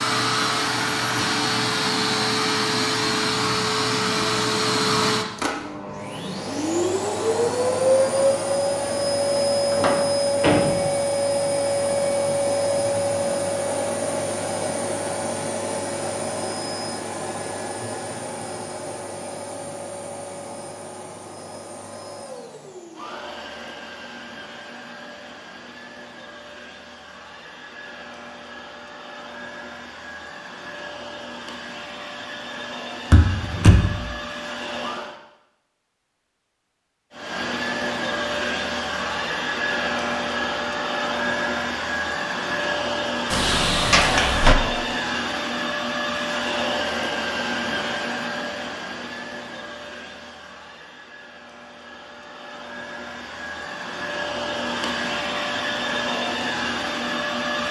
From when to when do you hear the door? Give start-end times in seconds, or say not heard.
9.7-10.9, 33.1-33.9, 43.3-44.5.